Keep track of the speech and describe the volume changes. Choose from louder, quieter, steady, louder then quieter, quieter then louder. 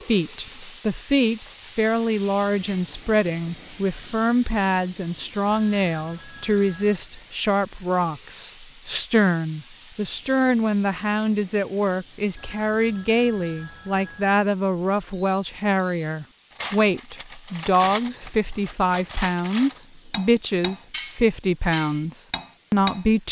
steady.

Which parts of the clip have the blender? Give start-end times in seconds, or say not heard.
not heard.